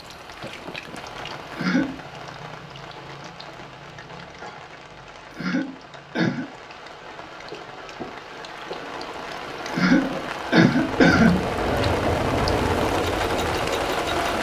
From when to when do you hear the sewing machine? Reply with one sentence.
You can hear the sewing machine from 12.8 to 14.3 s.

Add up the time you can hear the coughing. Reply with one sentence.
The coughing can be heard for 3 seconds in total.